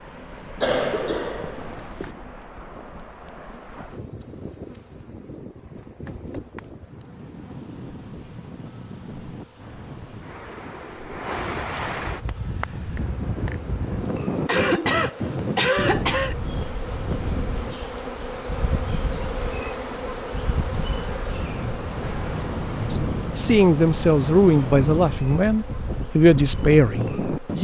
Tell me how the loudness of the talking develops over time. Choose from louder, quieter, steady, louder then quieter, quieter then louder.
steady.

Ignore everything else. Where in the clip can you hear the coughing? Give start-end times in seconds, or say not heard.
0.6-2.1, 14.4-16.4.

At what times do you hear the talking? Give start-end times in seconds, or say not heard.
22.8-27.5.